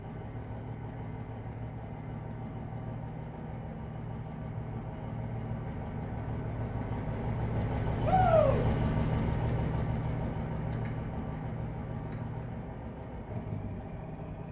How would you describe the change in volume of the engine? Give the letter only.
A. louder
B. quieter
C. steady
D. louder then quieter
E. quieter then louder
D.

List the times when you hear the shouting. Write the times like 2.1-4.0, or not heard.
8.1-8.7.